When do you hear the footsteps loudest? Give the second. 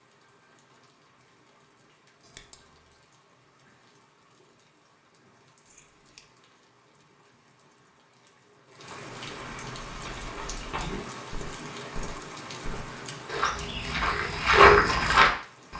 15 s.